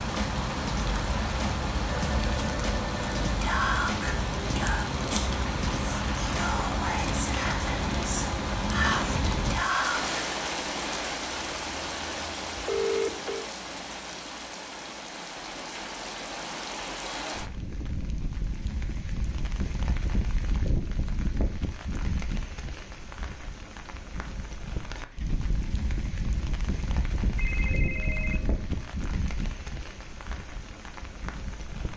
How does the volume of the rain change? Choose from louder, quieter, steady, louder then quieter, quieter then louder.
quieter.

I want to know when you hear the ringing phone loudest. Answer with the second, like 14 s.
13 s.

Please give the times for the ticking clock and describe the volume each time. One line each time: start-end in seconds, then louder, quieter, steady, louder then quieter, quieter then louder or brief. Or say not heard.
not heard.